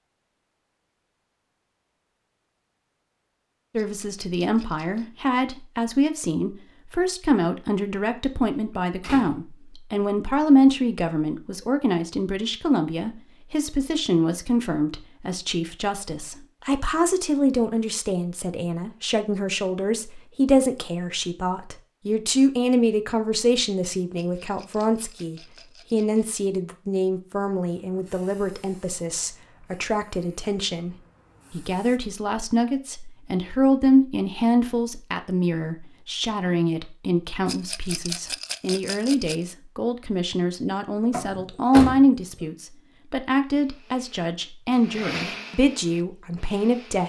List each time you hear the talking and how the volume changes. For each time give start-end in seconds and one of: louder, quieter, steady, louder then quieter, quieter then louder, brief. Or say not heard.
3.8-47.0 steady.